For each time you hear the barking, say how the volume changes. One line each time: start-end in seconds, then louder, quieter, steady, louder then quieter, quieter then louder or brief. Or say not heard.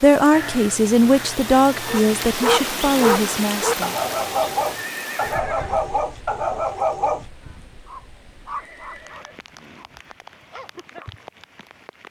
1.9-11.1 quieter.